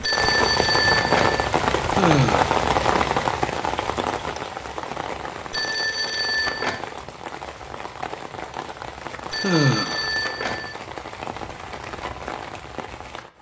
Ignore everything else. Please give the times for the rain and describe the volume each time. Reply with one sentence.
You can hear the rain from 0.0 to 13.3 s, getting quieter.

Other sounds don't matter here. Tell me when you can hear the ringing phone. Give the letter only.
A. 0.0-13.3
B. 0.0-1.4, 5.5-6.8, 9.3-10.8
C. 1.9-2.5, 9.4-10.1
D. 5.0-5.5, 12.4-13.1
B.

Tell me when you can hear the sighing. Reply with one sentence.
You can hear the sighing from 1.9 to 2.5 s and from 9.4 to 10.1 s.